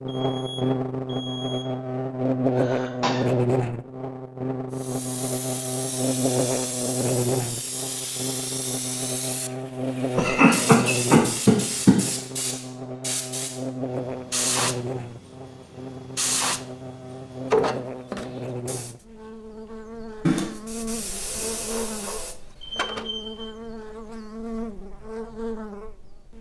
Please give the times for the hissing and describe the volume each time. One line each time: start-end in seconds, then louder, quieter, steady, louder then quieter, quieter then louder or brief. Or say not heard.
4.8-18.9 louder
20.5-23.1 brief.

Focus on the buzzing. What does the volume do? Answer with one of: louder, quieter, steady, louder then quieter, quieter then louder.
quieter.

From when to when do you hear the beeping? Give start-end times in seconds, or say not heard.
0.1-1.7, 22.6-23.4.